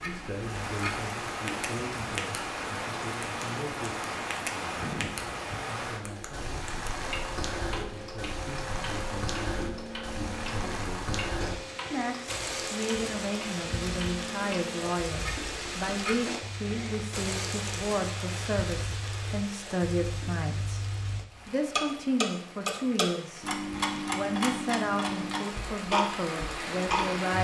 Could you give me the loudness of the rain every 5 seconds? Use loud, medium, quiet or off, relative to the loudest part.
loud, loud, loud, loud, medium, loud.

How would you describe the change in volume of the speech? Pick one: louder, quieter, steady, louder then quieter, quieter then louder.
louder.